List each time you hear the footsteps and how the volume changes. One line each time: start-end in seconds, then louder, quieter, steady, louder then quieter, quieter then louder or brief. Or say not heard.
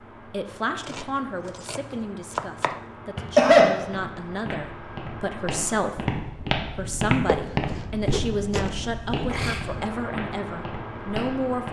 3.8-11.6 louder then quieter.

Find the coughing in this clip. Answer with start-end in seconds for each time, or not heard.
3.1-3.7, 8.8-9.6.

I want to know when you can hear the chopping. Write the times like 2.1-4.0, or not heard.
0.8-2.8, 7.2-8.8.